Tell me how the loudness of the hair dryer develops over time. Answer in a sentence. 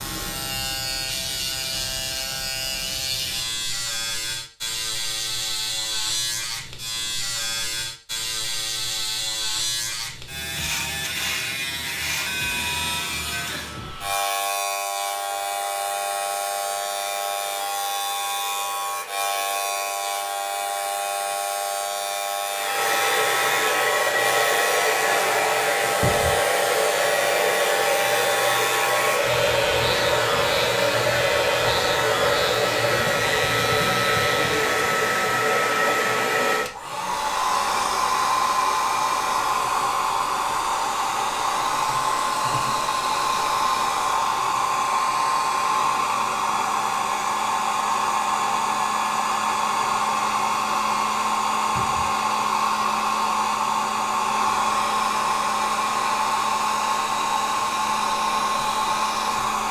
The volume of the hair dryer goes up.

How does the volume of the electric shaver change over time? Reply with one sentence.
The volume of the electric shaver stays about the same.